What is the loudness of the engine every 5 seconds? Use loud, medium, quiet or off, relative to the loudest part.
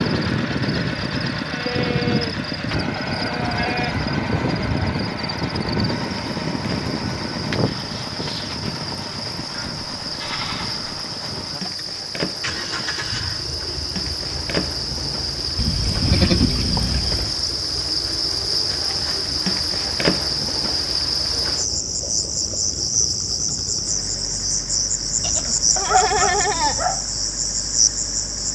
loud, loud, medium, quiet, quiet, quiet.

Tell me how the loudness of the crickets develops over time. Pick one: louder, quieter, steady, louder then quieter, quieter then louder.
louder.